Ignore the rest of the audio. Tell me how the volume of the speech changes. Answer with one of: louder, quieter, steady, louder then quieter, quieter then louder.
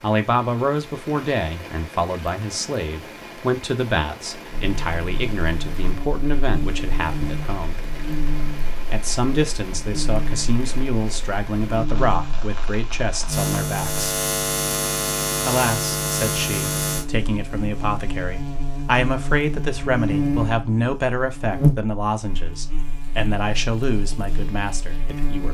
steady.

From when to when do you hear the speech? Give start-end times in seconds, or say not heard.
0.0-7.8, 8.9-14.2, 15.4-25.4.